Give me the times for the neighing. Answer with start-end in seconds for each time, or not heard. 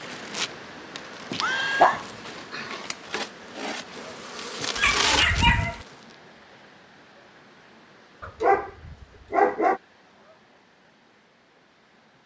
1.4-2.0.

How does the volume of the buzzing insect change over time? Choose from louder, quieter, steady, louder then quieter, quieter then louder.
quieter then louder.